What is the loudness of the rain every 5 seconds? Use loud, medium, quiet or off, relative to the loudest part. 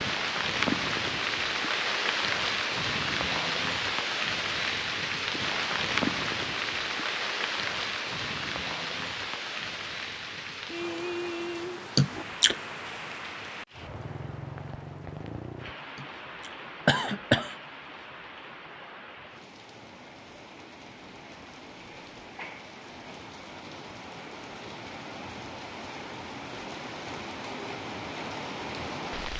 loud, loud, medium, quiet, quiet, medium.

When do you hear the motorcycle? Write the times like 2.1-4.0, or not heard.
not heard.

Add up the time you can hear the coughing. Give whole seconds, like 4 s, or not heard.
2 s.